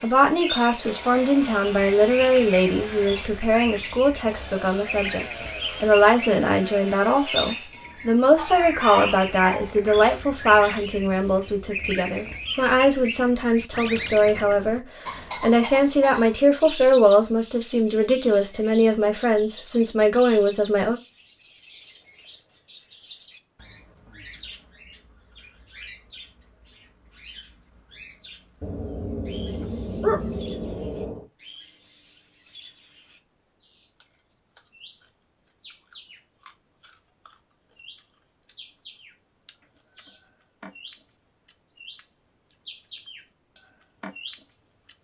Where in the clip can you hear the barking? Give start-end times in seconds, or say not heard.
8.3-9.8, 28.6-31.2.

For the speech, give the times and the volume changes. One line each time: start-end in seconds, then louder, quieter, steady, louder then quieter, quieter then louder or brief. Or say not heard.
0.0-20.9 steady.